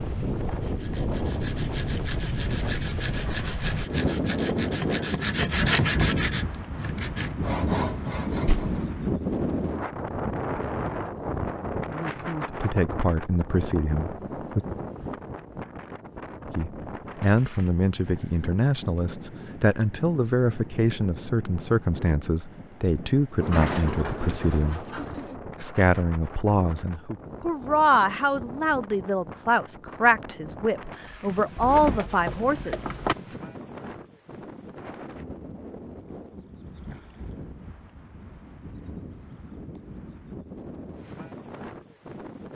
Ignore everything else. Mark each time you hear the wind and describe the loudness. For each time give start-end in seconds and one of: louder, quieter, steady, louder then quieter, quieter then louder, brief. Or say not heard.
0.0-42.5 quieter.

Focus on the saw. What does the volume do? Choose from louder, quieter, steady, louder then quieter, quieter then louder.
louder then quieter.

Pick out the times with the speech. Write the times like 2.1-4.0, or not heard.
11.9-14.7, 16.6-24.9, 25.6-33.4.